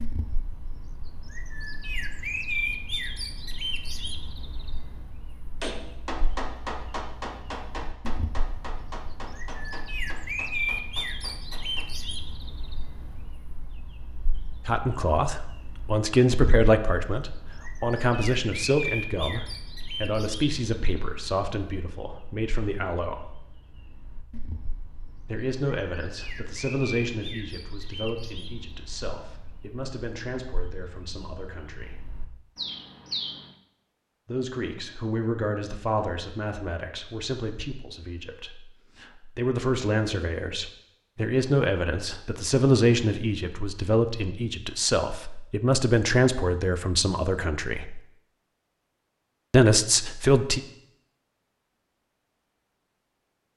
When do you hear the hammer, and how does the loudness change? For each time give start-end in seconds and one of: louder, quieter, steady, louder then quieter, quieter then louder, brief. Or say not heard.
5.6-11.9 quieter.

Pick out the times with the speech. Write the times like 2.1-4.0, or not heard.
14.7-23.4, 25.2-32.1, 34.2-48.0, 49.5-50.6.